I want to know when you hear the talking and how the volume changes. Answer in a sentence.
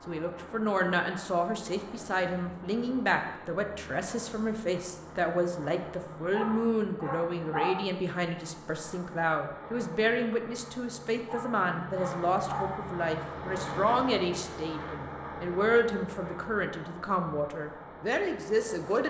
The talking can be heard from 0.1 to 19.0 s, at a steady volume.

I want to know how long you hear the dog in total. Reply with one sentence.
You can hear the dog for 3 seconds altogether.